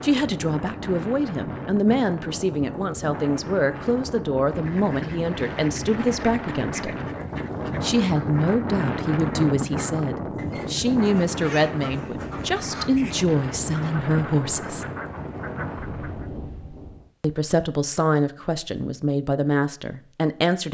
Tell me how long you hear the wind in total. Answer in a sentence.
You can hear the wind for 17 seconds altogether.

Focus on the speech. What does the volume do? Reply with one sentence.
The volume of the speech stays about the same.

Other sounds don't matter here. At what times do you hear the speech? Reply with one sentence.
The speech can be heard from 0.0 to 7.0 s, from 7.8 to 14.8 s and from 17.2 to 20.6 s.